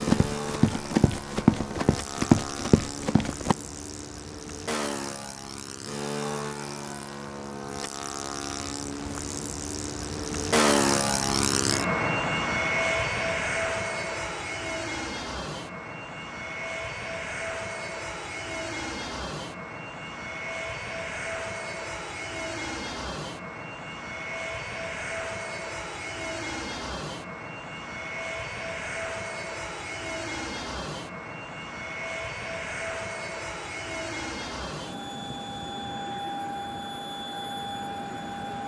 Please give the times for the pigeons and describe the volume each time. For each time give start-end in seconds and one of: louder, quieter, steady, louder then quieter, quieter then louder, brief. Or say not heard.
not heard.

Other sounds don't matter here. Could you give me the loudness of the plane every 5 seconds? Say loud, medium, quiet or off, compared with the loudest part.
medium, medium, loud, medium, medium, medium, medium, medium.